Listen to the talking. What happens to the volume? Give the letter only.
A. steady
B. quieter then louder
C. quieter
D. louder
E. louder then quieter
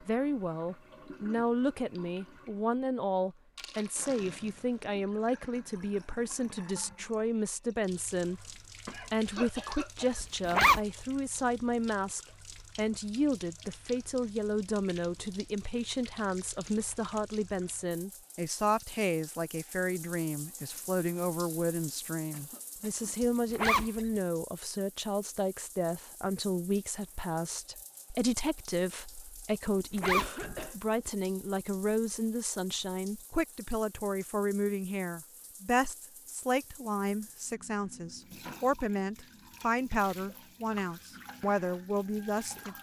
A.